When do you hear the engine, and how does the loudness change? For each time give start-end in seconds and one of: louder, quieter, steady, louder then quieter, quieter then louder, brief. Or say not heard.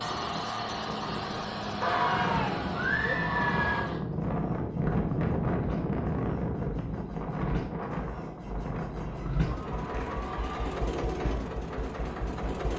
0.0-12.7 quieter then louder.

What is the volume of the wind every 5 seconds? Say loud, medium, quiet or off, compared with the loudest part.
loud, loud, medium.